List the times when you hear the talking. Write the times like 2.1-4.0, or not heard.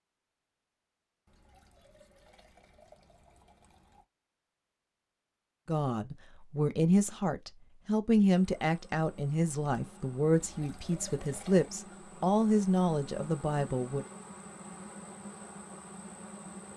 5.7-14.1.